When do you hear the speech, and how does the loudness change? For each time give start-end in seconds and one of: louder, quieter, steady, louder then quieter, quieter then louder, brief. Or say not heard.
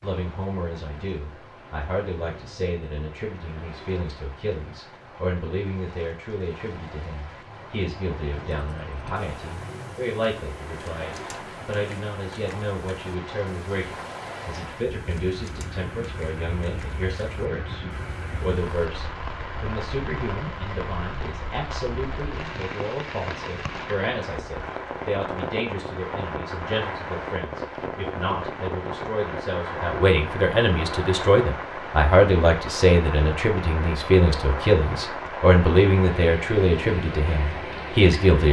0.0-38.4 louder.